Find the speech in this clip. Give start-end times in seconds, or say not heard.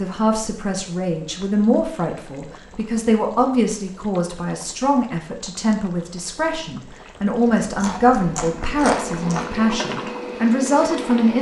0.0-11.3.